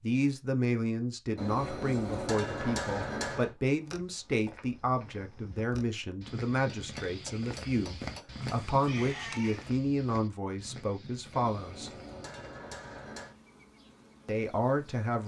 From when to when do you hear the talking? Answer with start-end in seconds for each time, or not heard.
0.0-11.9, 14.2-15.2.